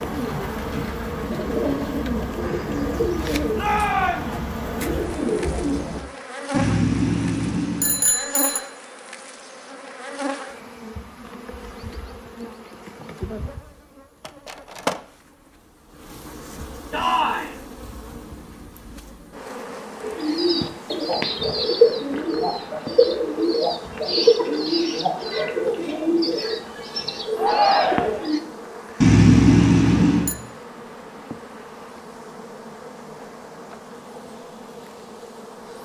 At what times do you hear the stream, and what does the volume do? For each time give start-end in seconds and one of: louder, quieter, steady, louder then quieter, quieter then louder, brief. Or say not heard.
not heard.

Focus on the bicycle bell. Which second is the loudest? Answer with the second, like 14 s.
29 s.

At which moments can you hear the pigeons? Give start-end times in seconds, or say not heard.
0.0-6.0, 20.0-28.4.